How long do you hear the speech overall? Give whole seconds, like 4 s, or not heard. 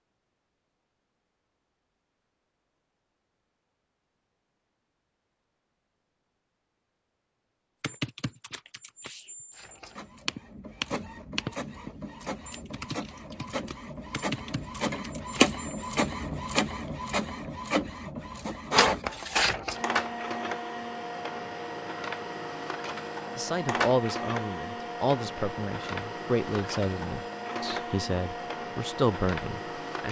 7 s.